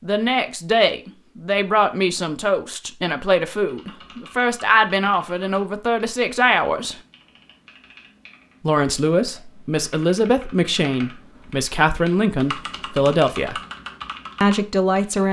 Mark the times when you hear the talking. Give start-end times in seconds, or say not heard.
0.0-7.0, 8.7-13.6, 14.4-15.2.